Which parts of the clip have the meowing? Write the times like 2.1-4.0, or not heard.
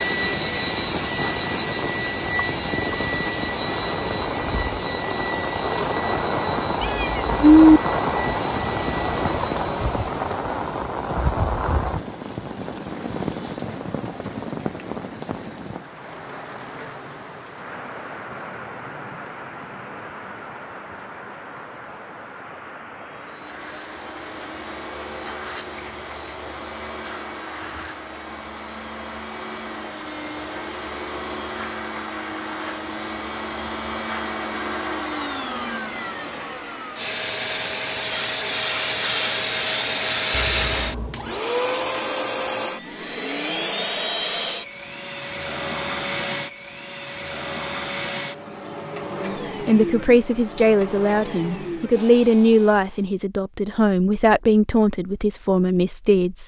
6.8-7.8, 40.3-41.4.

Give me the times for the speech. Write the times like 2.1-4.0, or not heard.
49.1-56.4.